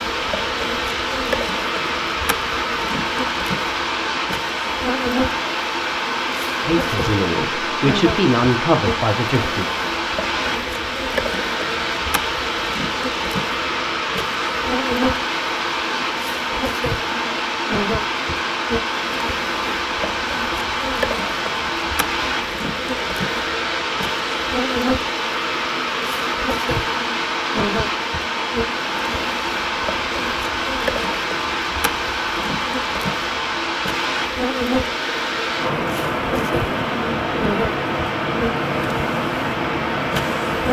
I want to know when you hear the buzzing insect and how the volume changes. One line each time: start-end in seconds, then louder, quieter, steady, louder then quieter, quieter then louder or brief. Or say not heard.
0.0-40.6 steady.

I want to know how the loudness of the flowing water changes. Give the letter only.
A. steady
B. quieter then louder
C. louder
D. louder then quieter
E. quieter
A.